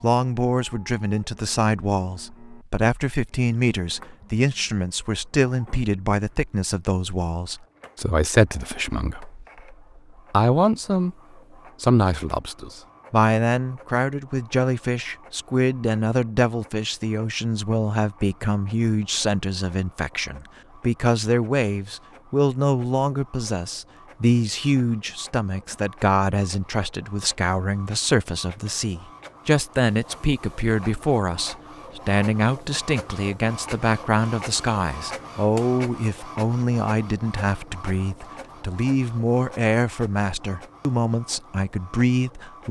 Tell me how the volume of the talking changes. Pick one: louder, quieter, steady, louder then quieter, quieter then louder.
steady.